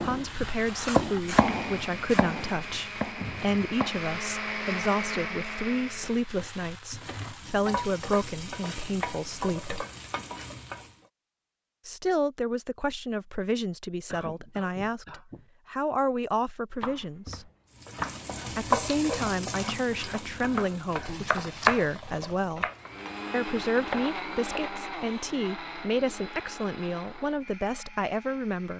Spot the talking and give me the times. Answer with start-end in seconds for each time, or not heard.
0.0-9.8, 11.8-17.5, 18.6-22.7, 23.3-28.7.